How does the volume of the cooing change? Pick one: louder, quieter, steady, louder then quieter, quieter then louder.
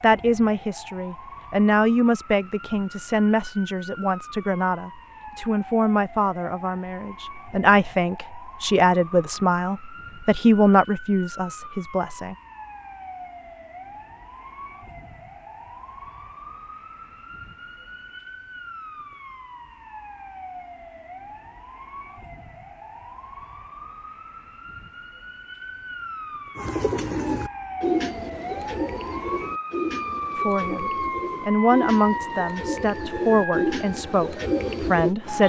quieter then louder.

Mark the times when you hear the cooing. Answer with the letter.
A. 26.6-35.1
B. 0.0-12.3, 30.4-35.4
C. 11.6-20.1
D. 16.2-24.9
A.